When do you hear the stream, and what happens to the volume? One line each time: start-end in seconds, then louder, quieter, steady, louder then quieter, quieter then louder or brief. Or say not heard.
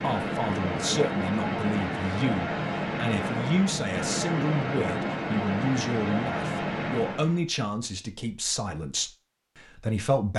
0.0-7.5 steady.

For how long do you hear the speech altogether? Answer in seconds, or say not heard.
10 s.